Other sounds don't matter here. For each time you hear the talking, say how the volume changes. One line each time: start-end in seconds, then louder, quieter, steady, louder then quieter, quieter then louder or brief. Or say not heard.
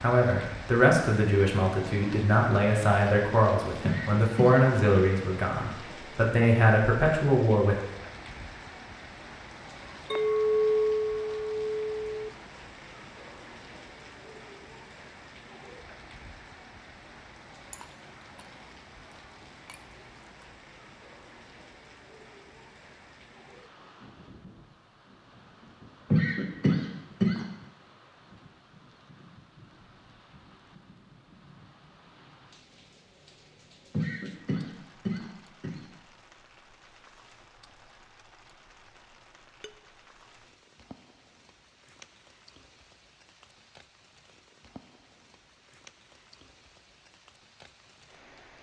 0.0-7.8 steady.